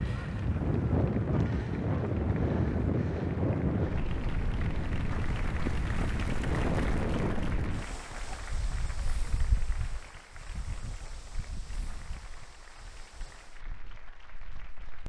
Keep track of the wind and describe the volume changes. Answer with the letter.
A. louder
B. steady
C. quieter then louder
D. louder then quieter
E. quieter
E.